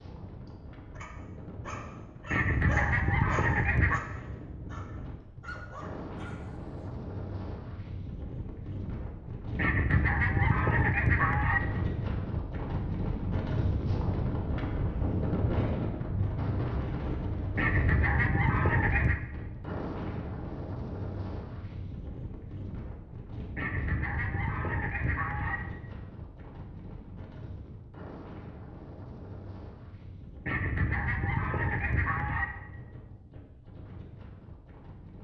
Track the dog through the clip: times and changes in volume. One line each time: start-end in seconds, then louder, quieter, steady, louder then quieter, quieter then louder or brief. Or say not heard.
0.5-6.5 louder then quieter.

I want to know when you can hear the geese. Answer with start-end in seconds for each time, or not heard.
2.3-4.0, 9.6-11.6, 17.6-19.2, 23.6-25.6, 30.4-32.5.